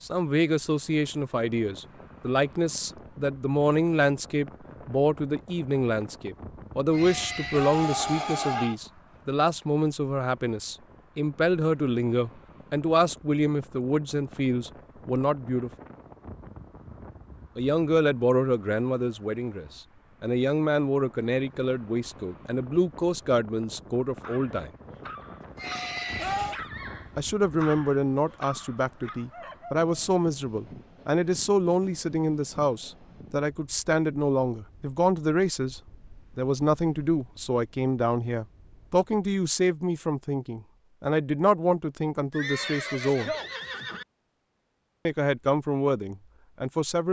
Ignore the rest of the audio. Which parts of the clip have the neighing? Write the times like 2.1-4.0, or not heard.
6.9-8.8, 25.6-26.6, 42.3-44.0.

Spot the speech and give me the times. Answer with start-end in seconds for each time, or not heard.
0.0-15.7, 17.6-24.7, 27.1-43.3, 45.0-47.0.